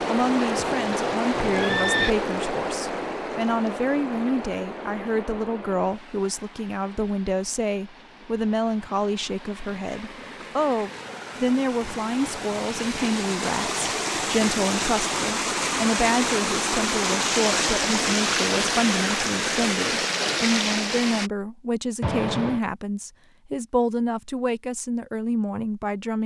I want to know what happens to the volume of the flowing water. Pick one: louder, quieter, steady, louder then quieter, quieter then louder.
quieter then louder.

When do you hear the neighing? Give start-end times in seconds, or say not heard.
0.6-2.1, 22.0-22.6.